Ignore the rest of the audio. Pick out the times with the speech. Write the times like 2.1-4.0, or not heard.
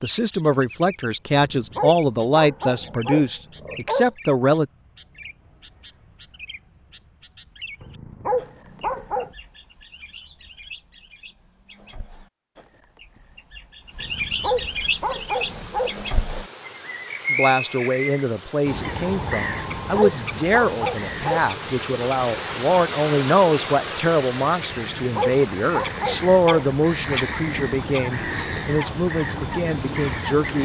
0.0-4.7, 17.3-30.6.